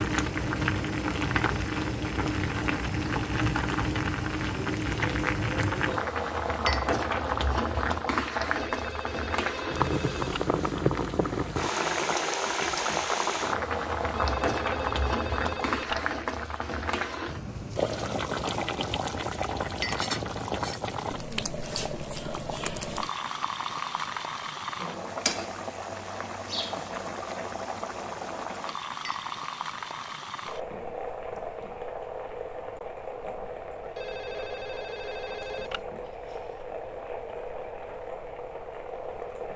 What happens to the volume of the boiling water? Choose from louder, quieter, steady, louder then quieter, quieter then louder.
quieter.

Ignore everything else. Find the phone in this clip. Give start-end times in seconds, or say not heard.
8.6-10.4, 14.2-16.0, 33.8-35.9.